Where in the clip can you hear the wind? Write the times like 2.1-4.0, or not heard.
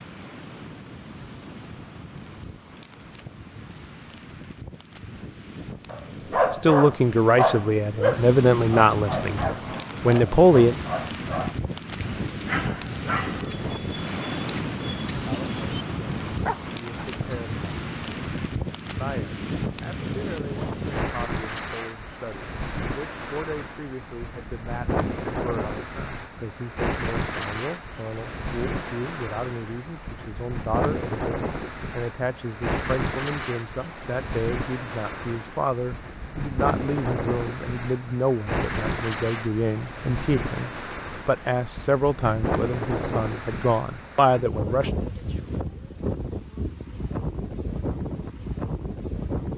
0.0-49.5.